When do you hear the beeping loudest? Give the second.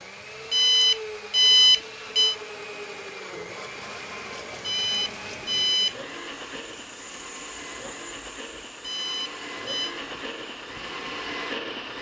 2 s.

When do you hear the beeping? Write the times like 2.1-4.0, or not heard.
0.5-2.4, 4.6-6.0, 8.8-9.9.